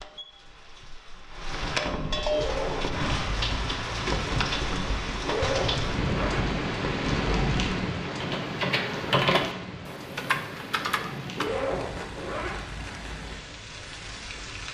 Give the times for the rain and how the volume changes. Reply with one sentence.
You can hear the rain from 0.0 to 14.6 s, getting quieter.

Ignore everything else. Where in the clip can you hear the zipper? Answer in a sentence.
You can hear the zipper from 2.2 to 3.0 s, from 5.2 to 6.5 s and from 11.3 to 12.7 s.